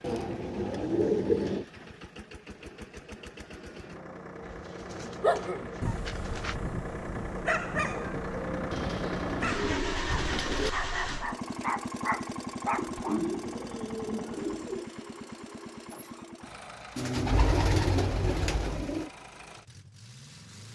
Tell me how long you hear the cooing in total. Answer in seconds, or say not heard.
10 s.